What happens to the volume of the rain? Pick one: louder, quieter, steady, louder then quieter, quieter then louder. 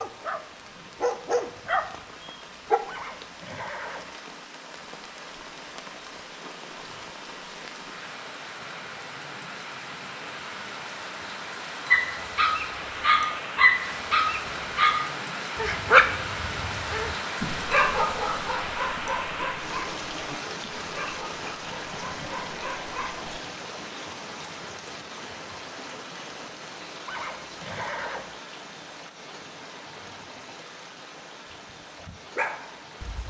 louder then quieter.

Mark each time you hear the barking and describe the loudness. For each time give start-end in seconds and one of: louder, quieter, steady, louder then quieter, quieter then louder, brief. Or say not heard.
0.0-2.8 brief
11.9-23.4 quieter
32.0-33.2 brief.